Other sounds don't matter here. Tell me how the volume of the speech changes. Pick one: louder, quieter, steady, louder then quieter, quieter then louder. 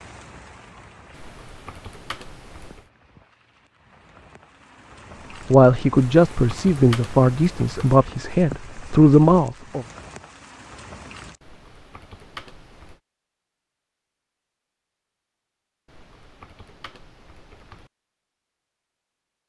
quieter then louder.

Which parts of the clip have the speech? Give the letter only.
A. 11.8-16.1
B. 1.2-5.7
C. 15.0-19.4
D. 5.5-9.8
D.